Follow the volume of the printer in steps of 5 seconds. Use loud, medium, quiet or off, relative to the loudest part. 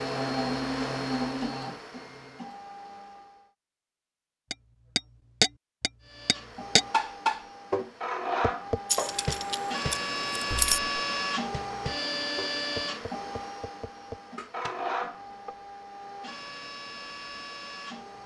loud, loud, loud, medium.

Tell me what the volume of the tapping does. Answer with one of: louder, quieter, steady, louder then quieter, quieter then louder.
quieter.